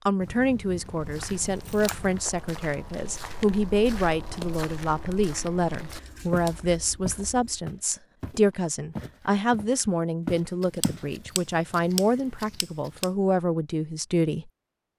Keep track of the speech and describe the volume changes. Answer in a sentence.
The volume of the speech stays about the same.